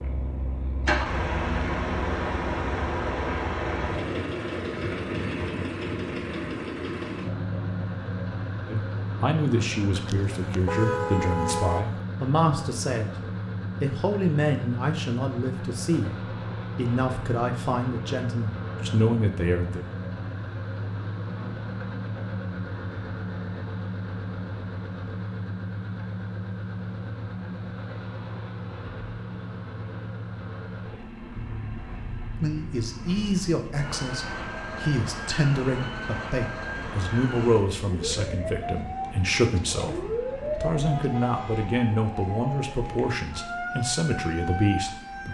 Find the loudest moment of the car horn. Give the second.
11 s.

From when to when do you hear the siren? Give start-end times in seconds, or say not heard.
31.3-45.2.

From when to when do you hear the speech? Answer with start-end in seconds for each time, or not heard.
8.7-13.2, 13.8-19.8, 32.4-45.2.